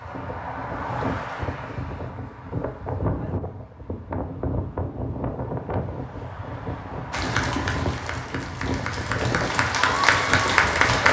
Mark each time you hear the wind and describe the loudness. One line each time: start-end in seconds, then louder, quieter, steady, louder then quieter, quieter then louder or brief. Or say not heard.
0.0-11.0 steady.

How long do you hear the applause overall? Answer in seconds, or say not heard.
4 s.